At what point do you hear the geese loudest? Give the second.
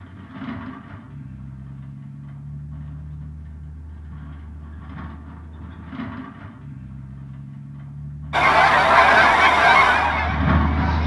9 s.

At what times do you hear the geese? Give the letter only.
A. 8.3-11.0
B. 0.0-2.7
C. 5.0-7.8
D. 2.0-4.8
A.